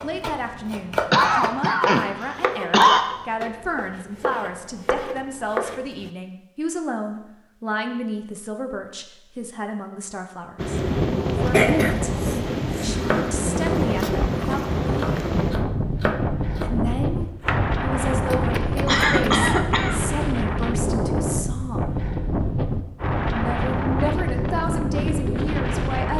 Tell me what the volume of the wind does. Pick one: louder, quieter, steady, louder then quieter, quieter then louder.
steady.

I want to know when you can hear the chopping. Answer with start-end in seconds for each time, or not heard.
0.0-6.1, 13.1-19.5.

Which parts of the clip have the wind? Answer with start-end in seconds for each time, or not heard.
10.6-26.1.